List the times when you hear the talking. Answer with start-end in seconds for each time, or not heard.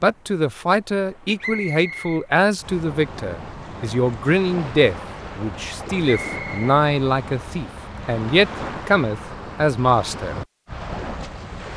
0.0-10.4.